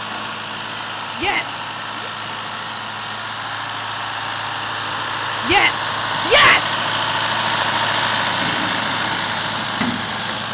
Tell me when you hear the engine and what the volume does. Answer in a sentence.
The engine can be heard from 0.0 to 10.4 s, getting louder.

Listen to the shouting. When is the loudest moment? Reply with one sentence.
The volume of the shouting peaks at 6 seconds.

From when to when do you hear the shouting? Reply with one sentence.
The shouting can be heard from 1.1 to 2.1 s and from 5.4 to 6.8 s.